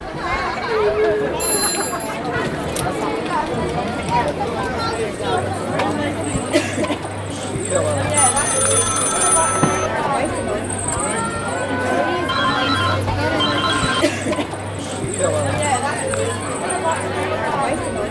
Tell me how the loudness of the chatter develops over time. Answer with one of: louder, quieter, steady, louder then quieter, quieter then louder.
steady.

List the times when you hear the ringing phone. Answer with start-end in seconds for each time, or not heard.
1.4-2.1, 8.2-9.9, 12.2-14.1.